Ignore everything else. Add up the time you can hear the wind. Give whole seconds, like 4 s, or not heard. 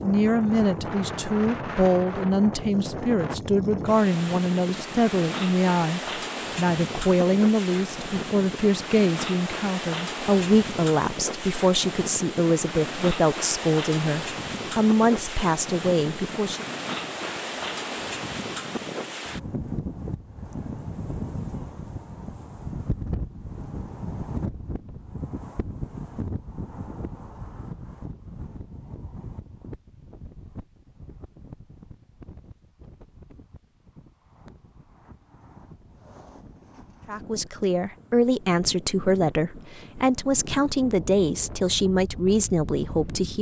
43 s.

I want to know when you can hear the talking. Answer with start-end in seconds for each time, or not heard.
0.0-16.6, 37.0-43.3.